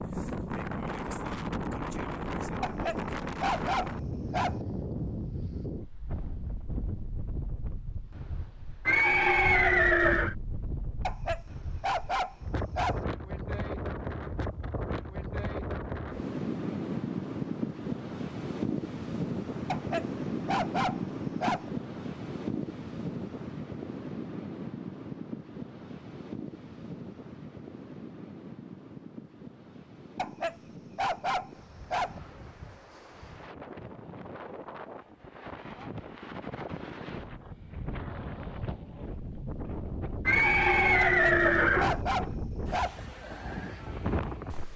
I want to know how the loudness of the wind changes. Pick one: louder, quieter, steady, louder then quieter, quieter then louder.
quieter then louder.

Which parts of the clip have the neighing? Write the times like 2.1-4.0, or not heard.
8.8-10.3, 40.2-42.0.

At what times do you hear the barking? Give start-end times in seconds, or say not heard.
2.6-4.7, 11.0-13.1, 19.6-21.7, 30.1-32.2, 41.0-43.0.